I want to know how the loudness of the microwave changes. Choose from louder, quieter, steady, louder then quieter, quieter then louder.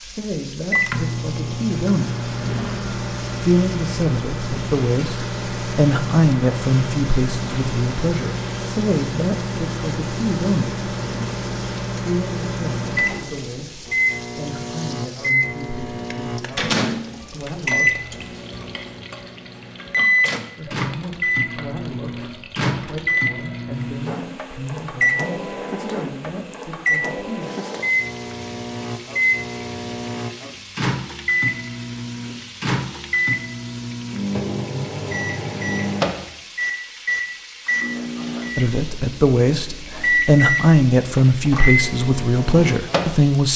steady.